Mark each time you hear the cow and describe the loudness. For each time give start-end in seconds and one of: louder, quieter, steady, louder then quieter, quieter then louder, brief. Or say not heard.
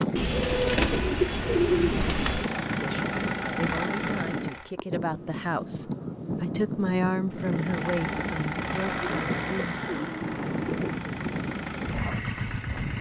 not heard.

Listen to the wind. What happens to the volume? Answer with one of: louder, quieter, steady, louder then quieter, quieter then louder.
steady.